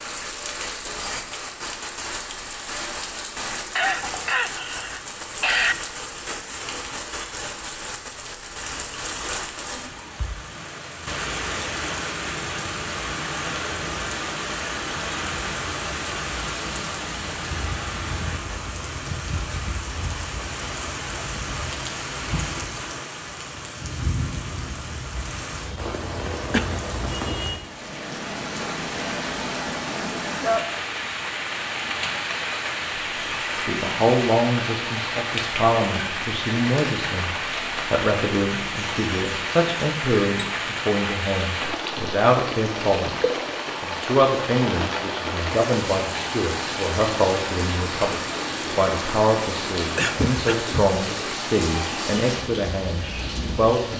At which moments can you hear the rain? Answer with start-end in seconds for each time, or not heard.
0.0-53.9.